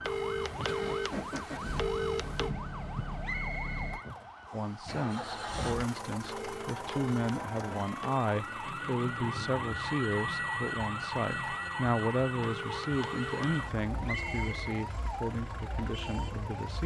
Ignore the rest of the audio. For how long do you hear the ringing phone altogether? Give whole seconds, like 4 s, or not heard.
6 s.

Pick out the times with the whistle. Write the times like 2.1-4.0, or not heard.
3.2-4.8, 14.1-14.7.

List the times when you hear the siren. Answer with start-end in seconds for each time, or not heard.
0.0-16.8.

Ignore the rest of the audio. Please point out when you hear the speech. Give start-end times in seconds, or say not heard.
4.5-16.8.